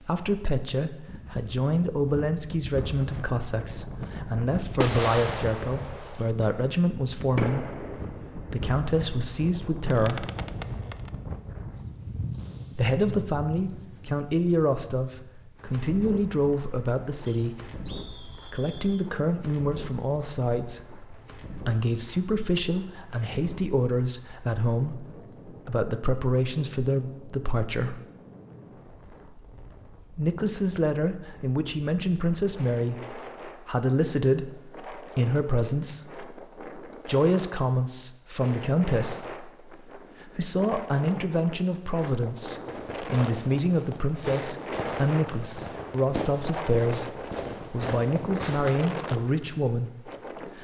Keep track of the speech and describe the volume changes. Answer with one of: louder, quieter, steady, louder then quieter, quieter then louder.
steady.